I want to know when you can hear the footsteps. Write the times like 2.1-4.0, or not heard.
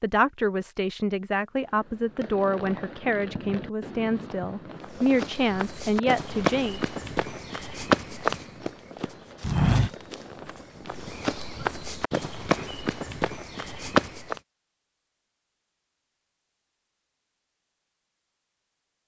4.8-14.4.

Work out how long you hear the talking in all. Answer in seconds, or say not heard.
7 s.